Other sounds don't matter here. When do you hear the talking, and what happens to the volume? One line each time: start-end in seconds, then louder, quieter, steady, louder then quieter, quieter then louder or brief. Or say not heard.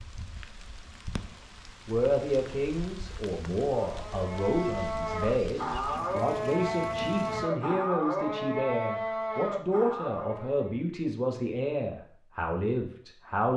1.9-13.5 steady.